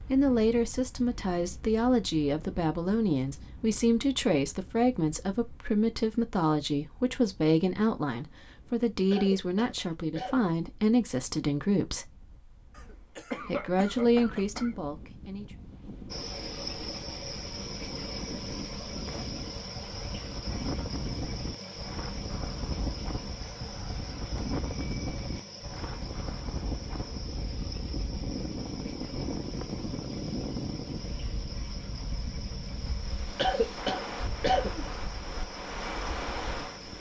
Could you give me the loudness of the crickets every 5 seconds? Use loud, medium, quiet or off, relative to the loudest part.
off, off, off, loud, loud, medium, medium, medium.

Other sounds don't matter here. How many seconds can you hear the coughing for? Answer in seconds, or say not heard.
5 s.